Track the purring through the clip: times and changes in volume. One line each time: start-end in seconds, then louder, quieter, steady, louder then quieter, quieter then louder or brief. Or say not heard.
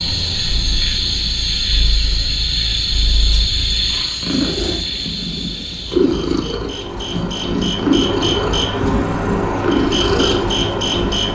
0.0-11.3 louder.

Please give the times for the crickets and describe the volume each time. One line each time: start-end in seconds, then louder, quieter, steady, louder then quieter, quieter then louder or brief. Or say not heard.
0.0-11.3 quieter then louder.